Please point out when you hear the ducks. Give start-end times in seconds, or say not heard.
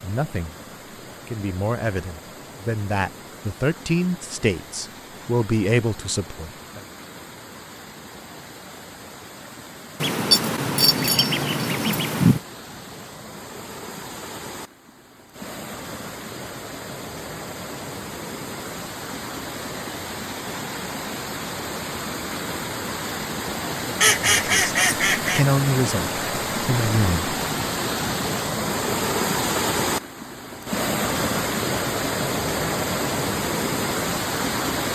10.0-12.4, 24.0-25.4.